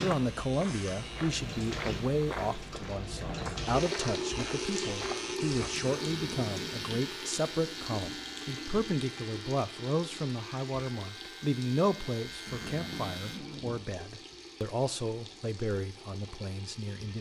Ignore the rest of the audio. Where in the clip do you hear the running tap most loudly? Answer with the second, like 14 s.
4 s.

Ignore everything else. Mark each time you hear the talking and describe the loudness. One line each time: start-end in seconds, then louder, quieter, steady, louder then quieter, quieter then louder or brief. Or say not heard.
0.0-17.1 steady.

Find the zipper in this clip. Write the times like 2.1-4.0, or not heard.
6.0-7.0, 12.4-13.8.